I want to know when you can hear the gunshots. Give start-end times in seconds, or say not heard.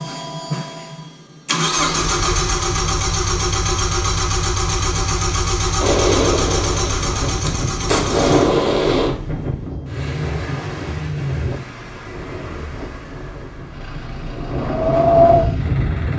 5.8-9.1.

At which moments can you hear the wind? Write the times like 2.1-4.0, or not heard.
7.0-16.1.